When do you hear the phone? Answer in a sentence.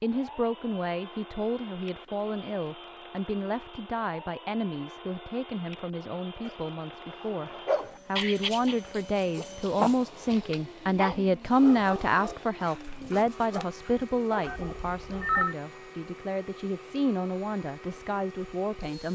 You can hear the phone from 14.4 to 15.6 s.